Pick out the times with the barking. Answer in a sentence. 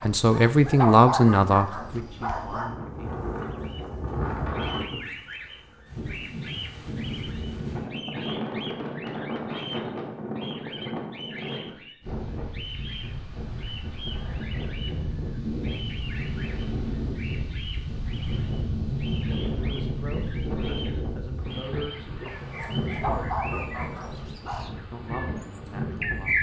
The barking can be heard from 0.0 to 2.8 s and from 22.2 to 24.7 s.